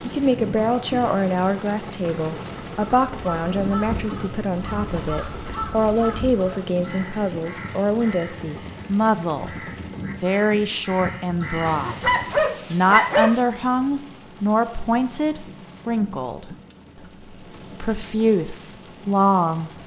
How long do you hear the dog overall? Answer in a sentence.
You can hear the dog for 2 seconds altogether.